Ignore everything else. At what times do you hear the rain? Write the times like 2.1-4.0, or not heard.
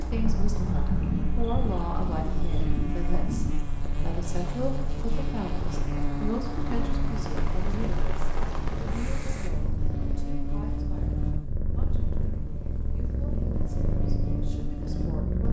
0.0-9.5.